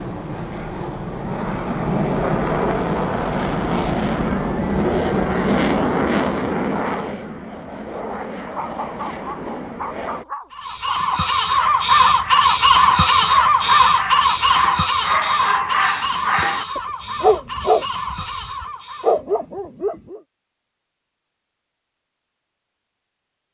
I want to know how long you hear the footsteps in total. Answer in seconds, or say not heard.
not heard.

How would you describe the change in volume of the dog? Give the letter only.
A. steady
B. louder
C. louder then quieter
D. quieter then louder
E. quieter
B.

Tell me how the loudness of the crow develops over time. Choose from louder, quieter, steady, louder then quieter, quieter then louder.
quieter.